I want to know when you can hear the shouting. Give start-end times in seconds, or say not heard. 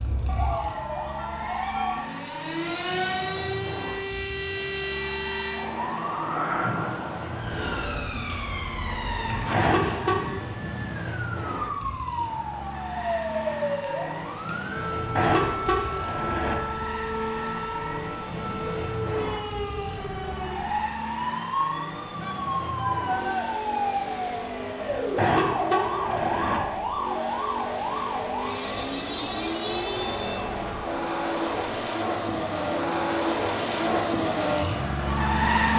22.2-23.5.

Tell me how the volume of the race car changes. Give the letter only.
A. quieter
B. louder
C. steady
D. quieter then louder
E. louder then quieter
B.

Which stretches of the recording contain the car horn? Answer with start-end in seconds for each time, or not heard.
9.5-10.2, 15.2-16.6, 25.1-26.6.